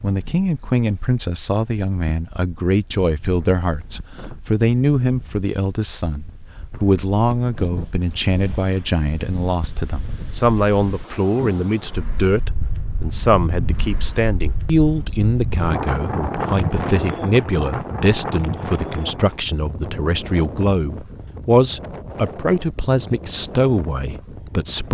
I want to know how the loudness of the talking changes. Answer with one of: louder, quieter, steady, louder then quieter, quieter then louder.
steady.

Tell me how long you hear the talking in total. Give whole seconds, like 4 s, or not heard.
25 s.